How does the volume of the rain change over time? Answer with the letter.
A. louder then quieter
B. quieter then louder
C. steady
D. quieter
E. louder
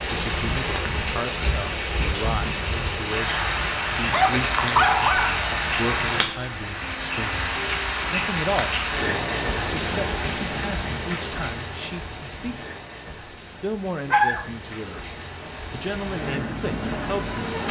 D.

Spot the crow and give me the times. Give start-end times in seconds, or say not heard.
not heard.